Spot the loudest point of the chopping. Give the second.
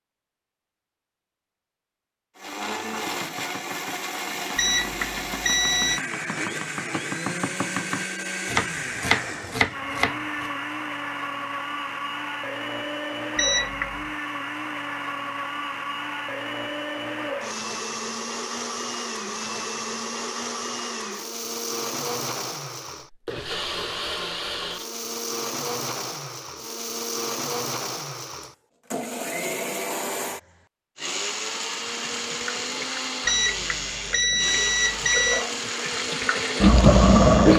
9 s.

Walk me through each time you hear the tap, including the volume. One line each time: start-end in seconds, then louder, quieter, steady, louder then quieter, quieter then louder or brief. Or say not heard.
31.9-37.5 louder.